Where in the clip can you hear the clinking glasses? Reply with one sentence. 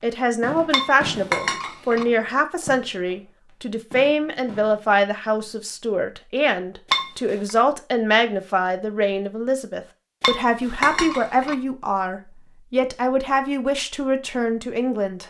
You can hear the clinking glasses from 0.7 to 2.0 s, from 6.9 to 7.5 s and from 10.2 to 11.6 s.